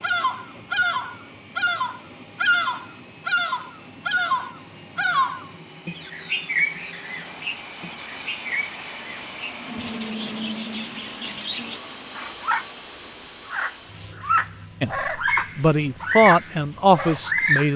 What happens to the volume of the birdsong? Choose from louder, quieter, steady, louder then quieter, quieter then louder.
quieter then louder.